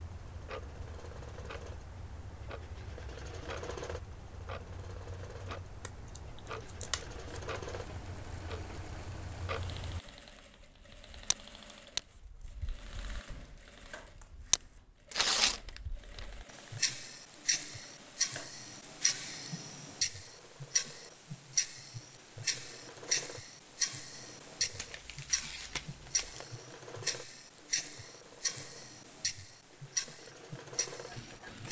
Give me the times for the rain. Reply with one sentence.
You can't hear the rain here.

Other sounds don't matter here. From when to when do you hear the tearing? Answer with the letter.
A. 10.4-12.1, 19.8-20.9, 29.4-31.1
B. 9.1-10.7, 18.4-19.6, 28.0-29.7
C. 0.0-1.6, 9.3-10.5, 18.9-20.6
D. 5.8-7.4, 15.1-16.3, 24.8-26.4
D.